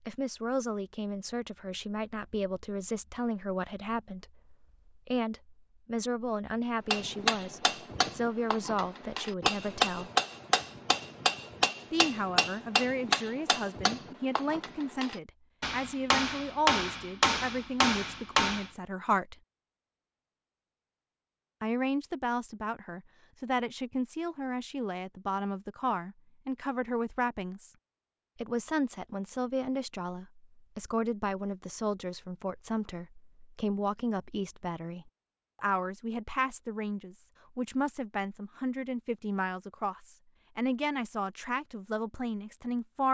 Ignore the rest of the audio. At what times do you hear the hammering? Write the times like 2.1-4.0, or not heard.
6.9-18.7.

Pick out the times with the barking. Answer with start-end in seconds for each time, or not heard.
not heard.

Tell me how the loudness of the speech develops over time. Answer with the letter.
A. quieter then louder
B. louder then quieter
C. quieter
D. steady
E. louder
D.